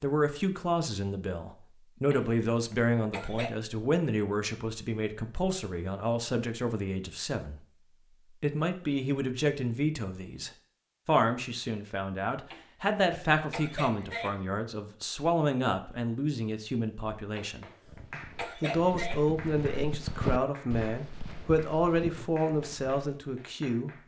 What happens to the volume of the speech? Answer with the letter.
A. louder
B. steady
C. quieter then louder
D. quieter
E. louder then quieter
B.